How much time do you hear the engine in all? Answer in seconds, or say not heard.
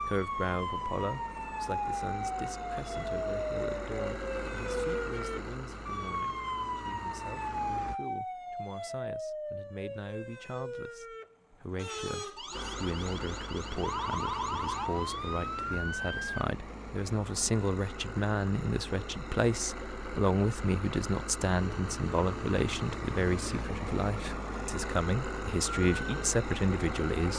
23 s.